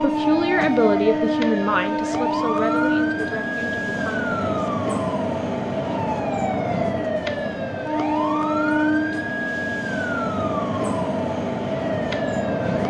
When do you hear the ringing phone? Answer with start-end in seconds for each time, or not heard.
not heard.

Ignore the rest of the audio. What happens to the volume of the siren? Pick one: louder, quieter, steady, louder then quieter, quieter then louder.
steady.